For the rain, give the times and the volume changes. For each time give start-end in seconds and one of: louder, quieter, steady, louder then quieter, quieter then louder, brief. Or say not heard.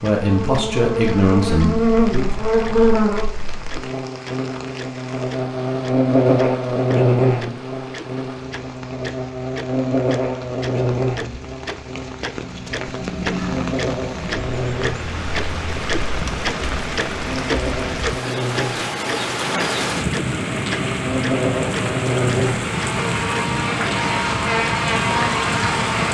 0.0-26.0 louder.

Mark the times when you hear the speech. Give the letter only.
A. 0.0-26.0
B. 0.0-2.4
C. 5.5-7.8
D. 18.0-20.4
B.